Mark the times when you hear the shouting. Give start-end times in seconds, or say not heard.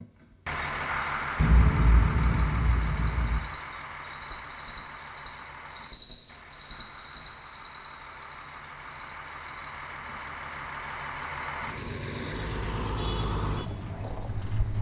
not heard.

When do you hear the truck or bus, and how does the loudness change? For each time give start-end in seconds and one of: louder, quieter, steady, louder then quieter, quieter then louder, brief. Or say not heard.
0.0-14.7 quieter then louder.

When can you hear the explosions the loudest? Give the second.
2 s.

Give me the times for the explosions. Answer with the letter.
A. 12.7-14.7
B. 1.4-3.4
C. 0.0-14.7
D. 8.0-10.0
B.